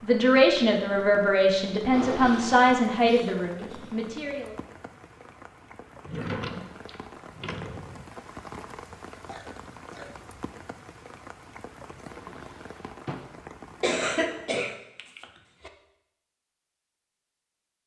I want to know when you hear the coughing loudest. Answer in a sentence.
The volume of the coughing peaks at 14 seconds.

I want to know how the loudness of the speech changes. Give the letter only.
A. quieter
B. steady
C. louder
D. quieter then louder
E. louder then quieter
A.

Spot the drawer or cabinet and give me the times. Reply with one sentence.
You can hear the drawer or cabinet from 1.9 to 2.6 s, from 6.0 to 8.1 s and from 12.1 to 13.3 s.